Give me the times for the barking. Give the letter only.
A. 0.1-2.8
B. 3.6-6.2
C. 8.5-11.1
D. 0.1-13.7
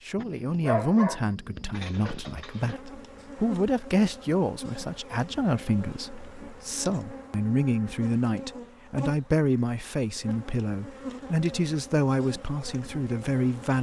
A.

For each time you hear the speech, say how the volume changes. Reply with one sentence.
The speech can be heard from 0.1 to 13.7 s, at a steady volume.